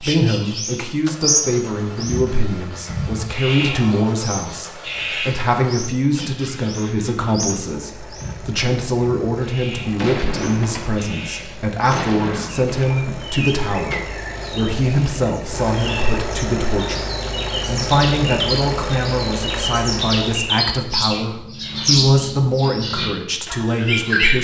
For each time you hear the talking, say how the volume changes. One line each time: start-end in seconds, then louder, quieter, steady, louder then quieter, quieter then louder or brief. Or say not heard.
0.0-24.3 steady.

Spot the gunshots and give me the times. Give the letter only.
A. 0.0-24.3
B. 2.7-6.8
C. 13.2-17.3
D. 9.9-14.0
D.